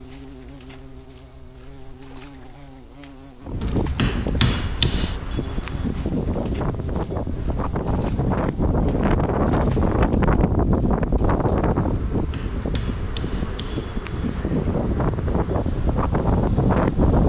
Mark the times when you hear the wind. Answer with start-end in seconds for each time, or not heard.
3.5-17.2.